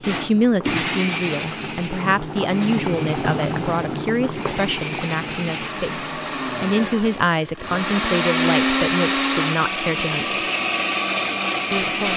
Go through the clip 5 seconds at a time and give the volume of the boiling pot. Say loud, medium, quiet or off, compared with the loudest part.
loud, medium, off.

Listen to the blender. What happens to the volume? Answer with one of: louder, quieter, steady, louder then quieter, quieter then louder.
quieter then louder.